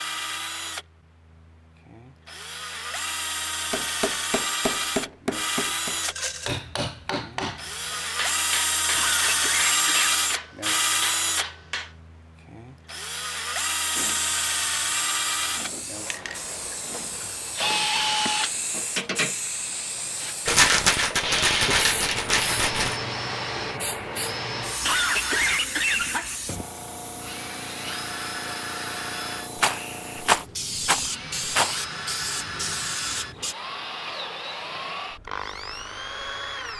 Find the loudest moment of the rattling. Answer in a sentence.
The volume of the rattling peaks at 21 seconds.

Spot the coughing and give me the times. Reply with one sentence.
You can hear the coughing from 8.9 to 10.2 s and from 24.8 to 26.6 s.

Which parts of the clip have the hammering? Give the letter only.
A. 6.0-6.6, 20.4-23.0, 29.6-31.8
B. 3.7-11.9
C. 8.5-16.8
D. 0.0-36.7
B.